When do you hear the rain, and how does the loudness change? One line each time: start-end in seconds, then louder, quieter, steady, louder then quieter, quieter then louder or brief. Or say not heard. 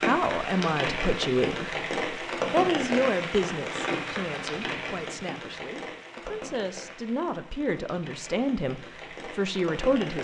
0.0-10.1 quieter.